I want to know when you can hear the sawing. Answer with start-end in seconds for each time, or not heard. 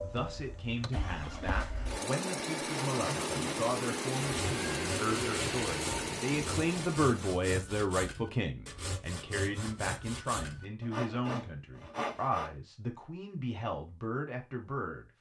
2.9-12.5.